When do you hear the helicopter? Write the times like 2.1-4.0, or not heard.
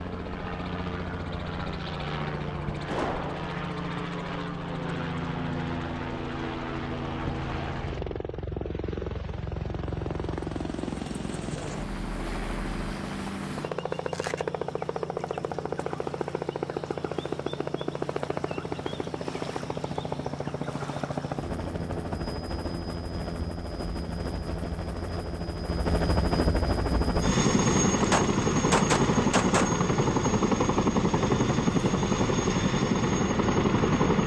0.0-34.2.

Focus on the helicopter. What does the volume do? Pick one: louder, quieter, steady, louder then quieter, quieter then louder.
louder.